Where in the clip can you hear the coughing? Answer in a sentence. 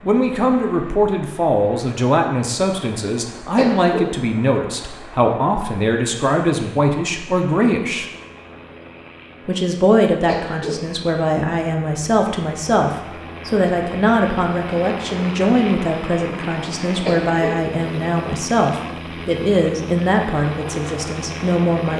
The coughing can be heard from 3.5 to 4.2 s, from 10.2 to 10.9 s and from 17.1 to 17.6 s.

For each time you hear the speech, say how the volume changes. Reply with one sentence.
The speech can be heard from 0.0 to 8.1 s, at a steady volume; and from 9.4 to 21.9 s, at a steady volume.